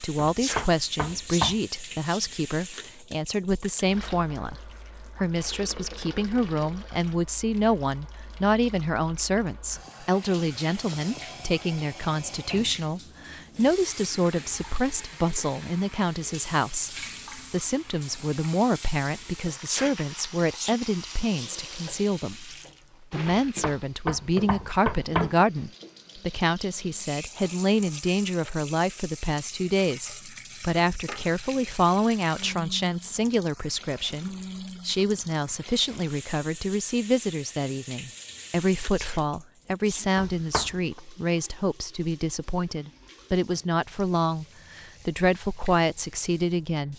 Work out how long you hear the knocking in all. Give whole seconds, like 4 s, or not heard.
4 s.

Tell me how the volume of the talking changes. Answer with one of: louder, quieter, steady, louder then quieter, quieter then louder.
steady.